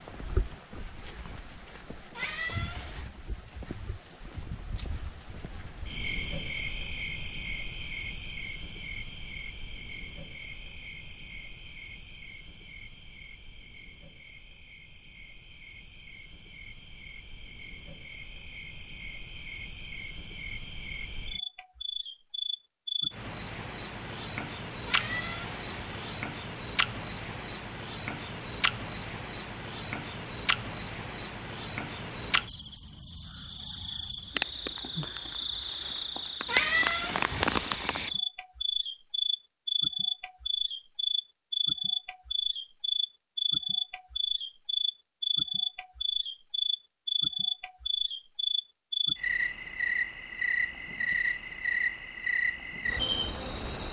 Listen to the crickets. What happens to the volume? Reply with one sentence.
The loudness of the crickets goes down, then up.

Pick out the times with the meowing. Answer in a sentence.
You can hear the meowing from 2.1 to 3.0 s, from 24.9 to 26.1 s and from 36.5 to 38.1 s.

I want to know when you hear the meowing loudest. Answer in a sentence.
The volume of the meowing peaks at 37 seconds.